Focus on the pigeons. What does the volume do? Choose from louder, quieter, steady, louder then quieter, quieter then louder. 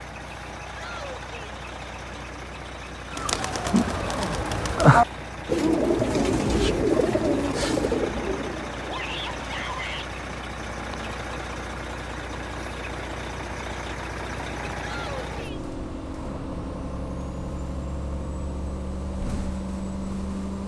louder then quieter.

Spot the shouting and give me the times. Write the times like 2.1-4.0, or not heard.
0.7-1.6, 8.8-10.1, 14.8-15.7.